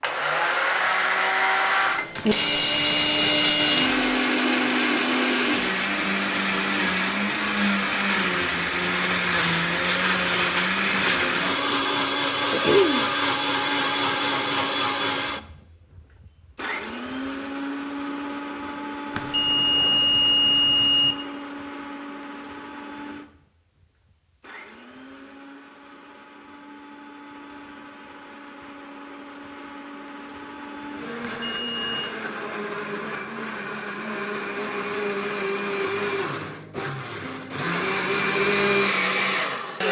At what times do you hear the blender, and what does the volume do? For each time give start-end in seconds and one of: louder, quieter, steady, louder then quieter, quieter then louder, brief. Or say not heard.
0.0-39.8 quieter then louder.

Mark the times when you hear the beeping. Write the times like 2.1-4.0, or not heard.
2.1-3.9, 19.1-21.1, 31.2-32.1.